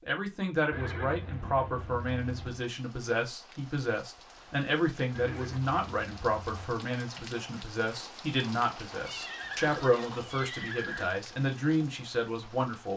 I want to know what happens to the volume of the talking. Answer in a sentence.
The volume of the talking stays about the same.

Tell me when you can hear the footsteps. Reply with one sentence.
The footsteps can't be heard in this clip.